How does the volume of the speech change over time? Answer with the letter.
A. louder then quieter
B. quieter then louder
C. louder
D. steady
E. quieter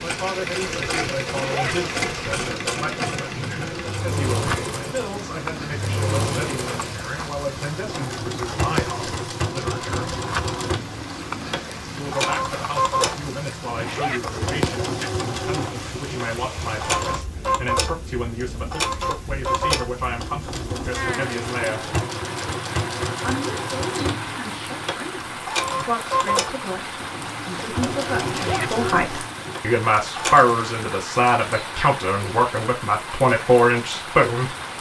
C.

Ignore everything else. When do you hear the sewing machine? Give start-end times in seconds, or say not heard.
0.0-30.6.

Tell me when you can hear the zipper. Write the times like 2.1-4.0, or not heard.
1.2-1.8, 13.7-14.2, 28.2-28.7.